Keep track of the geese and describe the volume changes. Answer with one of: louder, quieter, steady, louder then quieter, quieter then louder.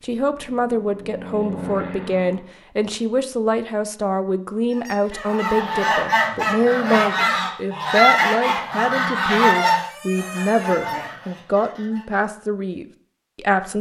quieter.